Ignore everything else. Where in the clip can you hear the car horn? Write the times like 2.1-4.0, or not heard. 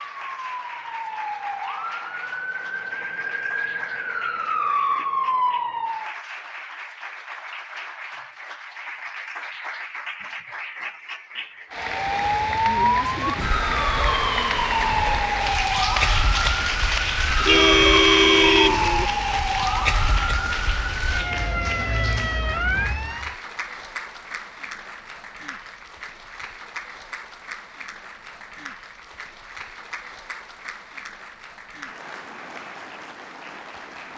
17.4-19.1.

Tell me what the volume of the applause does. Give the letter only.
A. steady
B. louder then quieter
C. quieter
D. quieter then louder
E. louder
B.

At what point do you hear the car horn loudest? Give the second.
18 s.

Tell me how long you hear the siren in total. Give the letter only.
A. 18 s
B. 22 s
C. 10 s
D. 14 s
A.